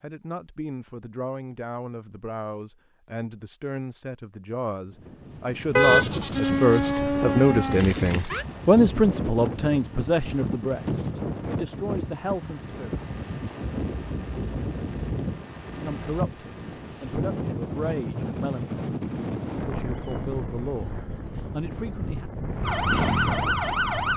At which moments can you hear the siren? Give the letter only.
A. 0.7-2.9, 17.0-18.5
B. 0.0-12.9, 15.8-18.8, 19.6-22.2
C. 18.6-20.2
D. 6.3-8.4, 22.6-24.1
D.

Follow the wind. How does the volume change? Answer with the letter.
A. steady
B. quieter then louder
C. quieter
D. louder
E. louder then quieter
A.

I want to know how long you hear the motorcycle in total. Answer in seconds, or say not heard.
2 s.